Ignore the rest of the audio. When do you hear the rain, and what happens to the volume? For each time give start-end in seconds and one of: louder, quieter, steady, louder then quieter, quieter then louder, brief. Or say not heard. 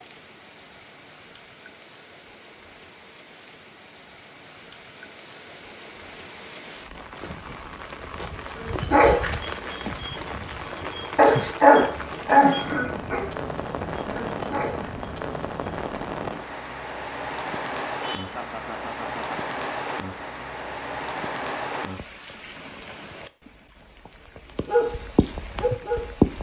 0.0-26.3 louder.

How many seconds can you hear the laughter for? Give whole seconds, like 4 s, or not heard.
2 s.